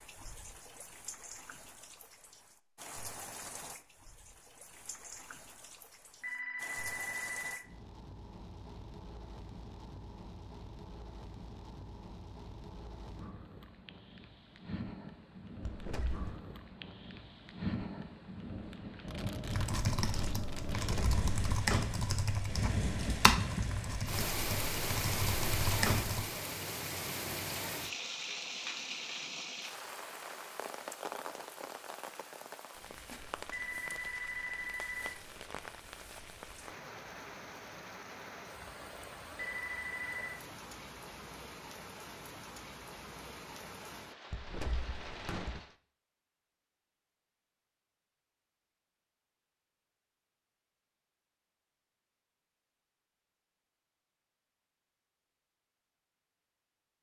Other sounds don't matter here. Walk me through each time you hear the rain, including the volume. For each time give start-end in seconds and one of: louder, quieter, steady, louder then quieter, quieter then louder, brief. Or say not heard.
0.0-45.8 louder then quieter.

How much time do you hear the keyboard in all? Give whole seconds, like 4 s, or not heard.
7 s.